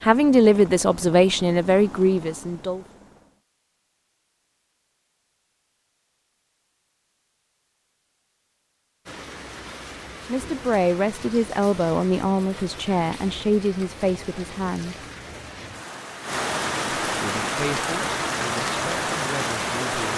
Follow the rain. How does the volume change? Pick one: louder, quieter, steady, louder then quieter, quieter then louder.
louder.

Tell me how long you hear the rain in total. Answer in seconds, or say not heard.
11 s.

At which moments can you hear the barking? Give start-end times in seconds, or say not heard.
not heard.